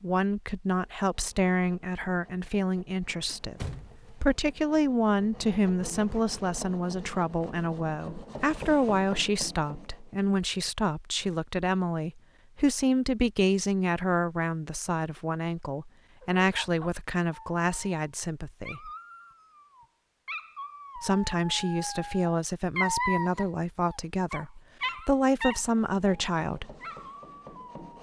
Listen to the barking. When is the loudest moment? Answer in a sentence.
The volume of the barking peaks at 23 seconds.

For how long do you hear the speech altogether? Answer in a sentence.
The speech can be heard for 25 seconds in total.